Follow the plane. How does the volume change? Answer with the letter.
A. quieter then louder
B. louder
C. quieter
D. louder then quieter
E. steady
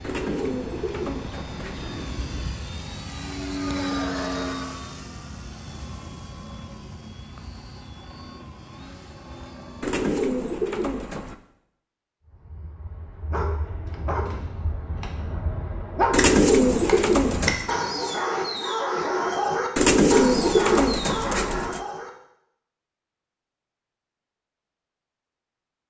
D.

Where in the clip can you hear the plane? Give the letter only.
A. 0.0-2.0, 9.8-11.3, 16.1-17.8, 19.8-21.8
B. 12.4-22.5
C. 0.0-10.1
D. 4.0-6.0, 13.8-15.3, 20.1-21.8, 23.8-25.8
C.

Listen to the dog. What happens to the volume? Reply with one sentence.
The loudness of the dog goes up.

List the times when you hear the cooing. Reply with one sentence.
You can hear the cooing from 0.0 to 2.0 s, from 9.8 to 11.3 s, from 16.1 to 17.8 s and from 19.8 to 21.8 s.